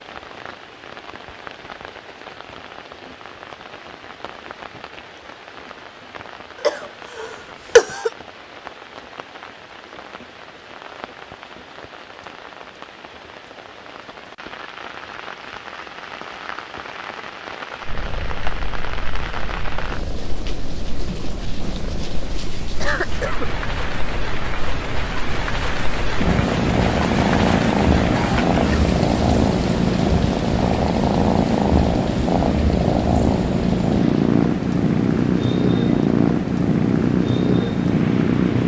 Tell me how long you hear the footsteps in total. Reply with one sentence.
The footsteps can't be heard in this clip.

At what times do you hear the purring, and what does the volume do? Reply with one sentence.
The purring can be heard from 17.9 to 38.6 s, getting louder.